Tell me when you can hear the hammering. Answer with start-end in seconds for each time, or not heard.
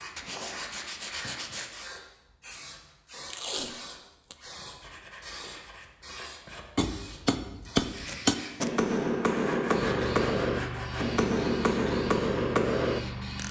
6.8-13.4.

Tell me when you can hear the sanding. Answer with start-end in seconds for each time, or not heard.
0.1-1.9, 4.8-6.7, 9.2-11.1.